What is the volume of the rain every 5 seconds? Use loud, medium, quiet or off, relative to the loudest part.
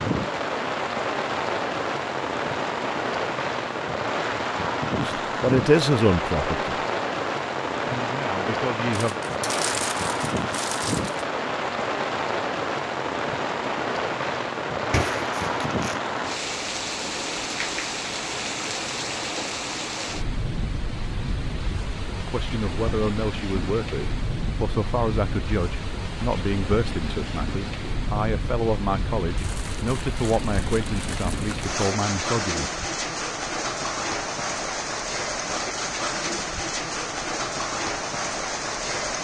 loud, loud, loud, loud, medium, medium, loud, loud.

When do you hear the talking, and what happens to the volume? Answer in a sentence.
The talking can be heard briefly from 5.0 to 6.8 s; briefly from 7.8 to 9.2 s; and from 22.2 to 32.7 s, at a steady volume.